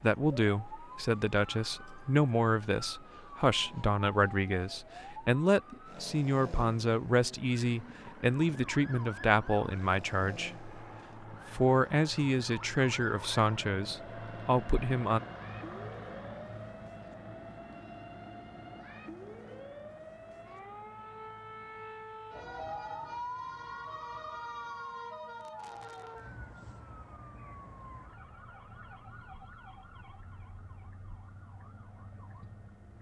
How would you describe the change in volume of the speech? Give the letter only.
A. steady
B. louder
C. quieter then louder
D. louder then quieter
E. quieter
A.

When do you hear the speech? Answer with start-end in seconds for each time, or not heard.
0.0-10.7, 11.5-15.2.